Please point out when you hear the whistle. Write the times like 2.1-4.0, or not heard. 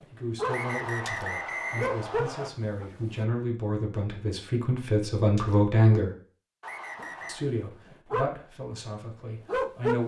0.5-2.5, 6.6-7.5.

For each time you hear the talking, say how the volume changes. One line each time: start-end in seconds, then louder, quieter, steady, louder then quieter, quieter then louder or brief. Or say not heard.
0.1-6.1 louder
7.2-10.0 brief.